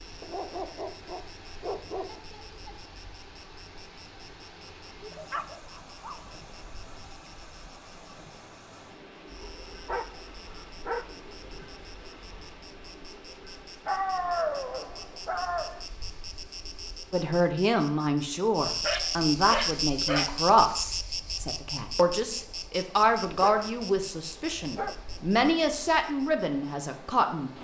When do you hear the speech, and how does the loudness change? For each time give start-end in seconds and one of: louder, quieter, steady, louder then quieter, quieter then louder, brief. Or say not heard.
17.1-27.5 steady.